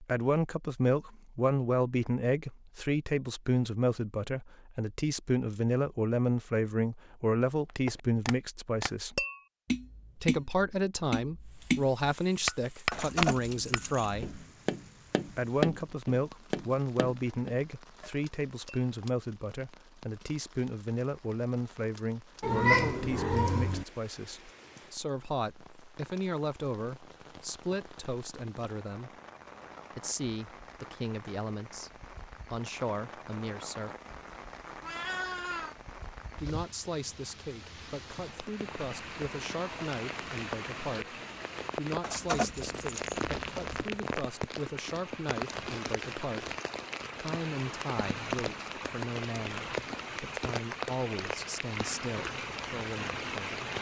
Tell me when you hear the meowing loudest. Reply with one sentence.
The volume of the meowing peaks at 23 seconds.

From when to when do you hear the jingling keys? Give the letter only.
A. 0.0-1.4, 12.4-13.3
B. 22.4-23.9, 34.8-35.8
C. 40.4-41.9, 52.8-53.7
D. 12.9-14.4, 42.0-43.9
D.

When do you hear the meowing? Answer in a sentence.
The meowing can be heard from 22.4 to 23.9 s and from 34.8 to 35.8 s.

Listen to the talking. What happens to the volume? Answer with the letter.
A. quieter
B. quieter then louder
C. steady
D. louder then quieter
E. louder
A.